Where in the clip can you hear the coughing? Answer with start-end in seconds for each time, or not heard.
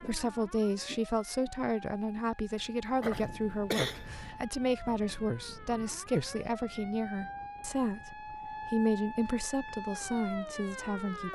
2.5-4.3.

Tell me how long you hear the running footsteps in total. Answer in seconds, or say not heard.
not heard.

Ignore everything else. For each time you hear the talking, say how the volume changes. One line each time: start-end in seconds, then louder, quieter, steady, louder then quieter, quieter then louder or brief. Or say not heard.
0.0-11.3 steady.